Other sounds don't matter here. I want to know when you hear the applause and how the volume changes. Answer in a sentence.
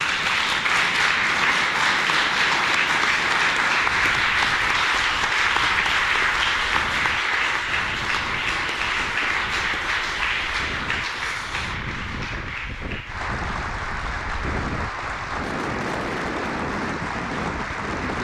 The applause can be heard from 0.0 to 18.2 s, getting quieter.